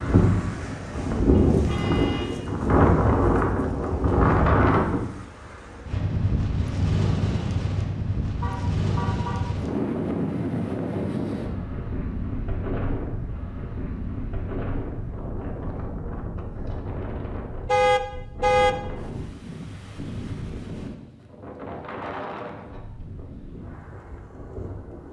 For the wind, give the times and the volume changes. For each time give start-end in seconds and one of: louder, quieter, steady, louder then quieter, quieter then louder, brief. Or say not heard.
0.0-25.0 quieter.